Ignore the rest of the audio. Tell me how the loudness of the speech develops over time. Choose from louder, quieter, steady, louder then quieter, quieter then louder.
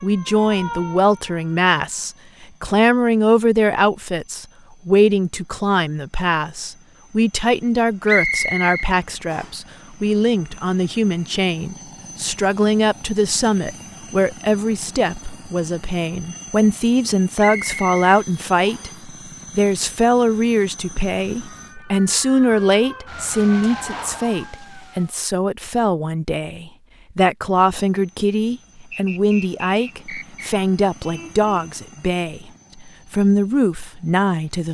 steady.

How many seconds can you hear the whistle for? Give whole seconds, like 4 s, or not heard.
5 s.